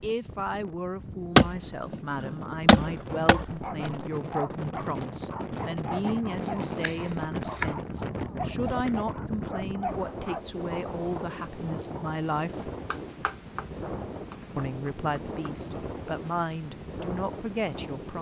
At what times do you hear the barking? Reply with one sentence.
The barking can be heard from 3.1 to 10.8 s.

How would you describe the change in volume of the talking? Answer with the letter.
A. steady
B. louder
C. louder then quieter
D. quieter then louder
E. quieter
A.